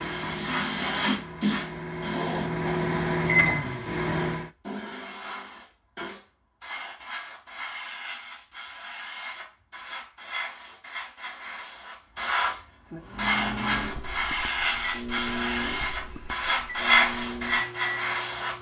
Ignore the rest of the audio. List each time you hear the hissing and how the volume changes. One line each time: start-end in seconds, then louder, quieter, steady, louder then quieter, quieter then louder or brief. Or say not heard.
0.0-18.5 quieter then louder.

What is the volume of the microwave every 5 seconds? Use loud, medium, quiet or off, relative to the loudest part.
loud, off, medium, medium.